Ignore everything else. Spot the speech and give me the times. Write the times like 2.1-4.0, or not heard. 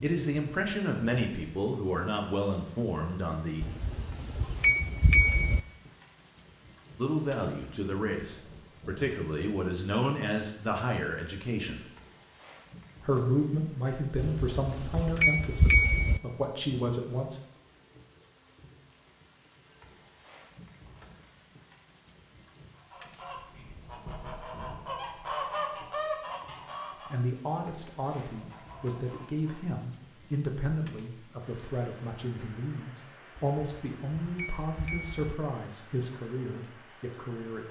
0.0-3.6, 7.0-11.8, 13.1-17.4, 27.1-37.6.